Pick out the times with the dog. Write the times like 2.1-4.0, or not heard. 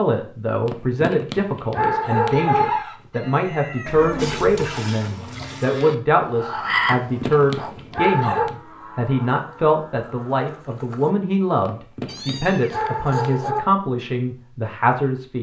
0.7-2.6, 6.8-8.6, 11.7-13.7.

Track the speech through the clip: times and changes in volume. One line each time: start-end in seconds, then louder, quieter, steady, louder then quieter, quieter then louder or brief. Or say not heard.
0.0-15.3 steady.